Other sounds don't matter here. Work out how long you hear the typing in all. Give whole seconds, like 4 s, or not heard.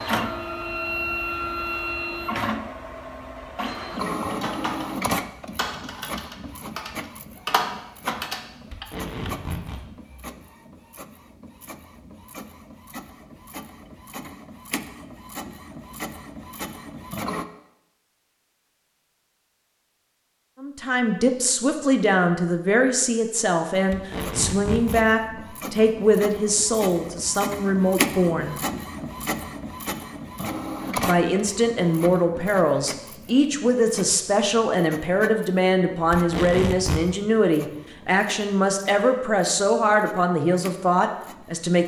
5 s.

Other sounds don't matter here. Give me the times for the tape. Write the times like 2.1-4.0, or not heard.
8.7-9.8, 23.9-25.1, 36.1-37.0.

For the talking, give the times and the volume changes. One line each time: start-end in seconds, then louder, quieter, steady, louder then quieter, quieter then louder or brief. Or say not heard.
20.6-28.6 steady
30.9-41.8 steady.